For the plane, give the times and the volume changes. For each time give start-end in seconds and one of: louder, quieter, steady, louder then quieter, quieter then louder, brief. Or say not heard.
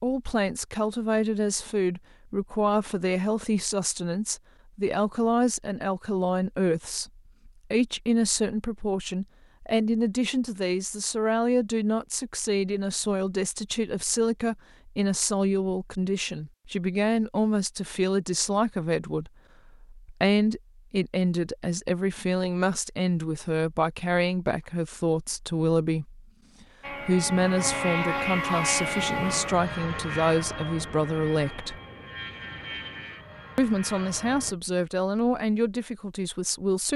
26.8-34.5 quieter.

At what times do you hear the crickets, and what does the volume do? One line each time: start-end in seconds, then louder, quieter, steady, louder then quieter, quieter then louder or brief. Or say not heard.
not heard.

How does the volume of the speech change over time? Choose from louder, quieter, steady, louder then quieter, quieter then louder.
steady.